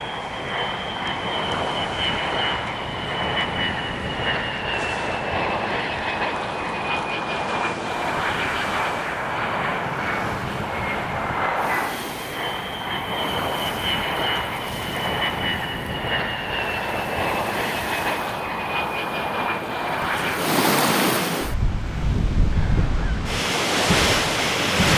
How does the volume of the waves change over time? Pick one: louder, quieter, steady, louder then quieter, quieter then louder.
louder.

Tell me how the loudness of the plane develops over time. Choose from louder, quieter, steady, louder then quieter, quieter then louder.
steady.